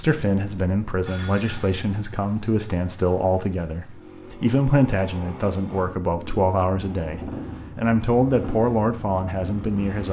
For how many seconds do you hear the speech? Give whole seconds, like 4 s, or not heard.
10 s.